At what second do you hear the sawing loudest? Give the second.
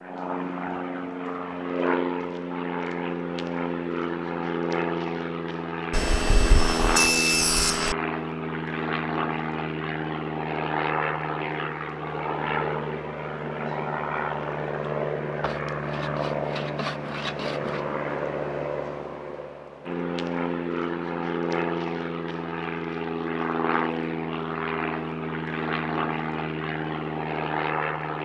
7 s.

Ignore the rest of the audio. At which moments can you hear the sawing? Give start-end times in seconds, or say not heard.
5.9-8.0, 15.4-17.9.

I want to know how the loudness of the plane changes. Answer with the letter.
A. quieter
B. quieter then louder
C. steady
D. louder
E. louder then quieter
C.